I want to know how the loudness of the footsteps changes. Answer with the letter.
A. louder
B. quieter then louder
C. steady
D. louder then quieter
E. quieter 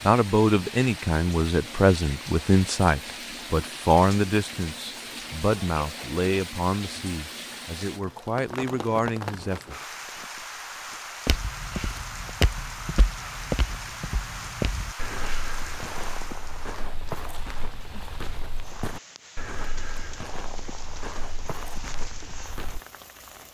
E.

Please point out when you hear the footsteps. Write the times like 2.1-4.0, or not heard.
11.2-22.8.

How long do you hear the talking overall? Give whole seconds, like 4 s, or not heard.
10 s.